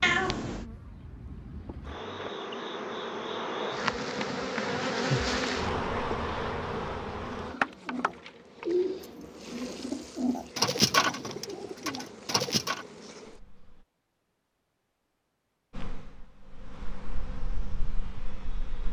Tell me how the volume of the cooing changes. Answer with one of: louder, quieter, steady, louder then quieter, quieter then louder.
louder then quieter.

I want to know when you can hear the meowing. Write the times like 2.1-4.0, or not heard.
0.0-0.7.